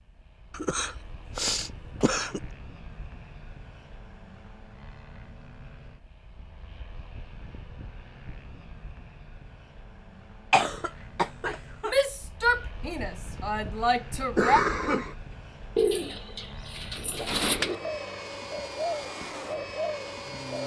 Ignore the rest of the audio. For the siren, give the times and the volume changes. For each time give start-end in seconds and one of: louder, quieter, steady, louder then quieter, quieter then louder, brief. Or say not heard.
not heard.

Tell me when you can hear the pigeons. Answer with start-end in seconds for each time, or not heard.
15.8-20.6.